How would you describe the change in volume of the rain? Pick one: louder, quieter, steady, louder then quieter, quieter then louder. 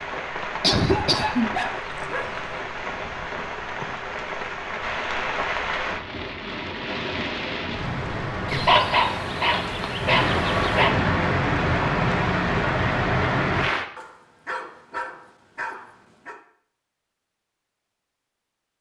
louder.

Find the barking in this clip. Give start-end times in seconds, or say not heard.
0.8-2.5, 8.5-10.9, 13.9-16.4.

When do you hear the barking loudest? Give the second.
9 s.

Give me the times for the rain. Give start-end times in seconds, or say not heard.
0.0-13.8.